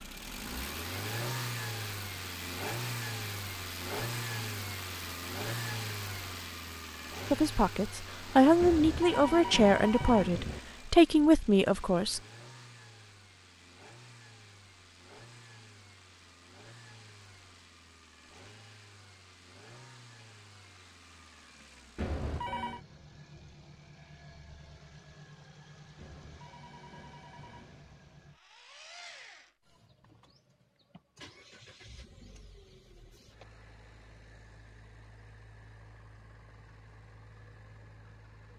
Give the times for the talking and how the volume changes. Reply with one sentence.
You can hear the talking from 7.3 to 12.2 s, at a steady volume.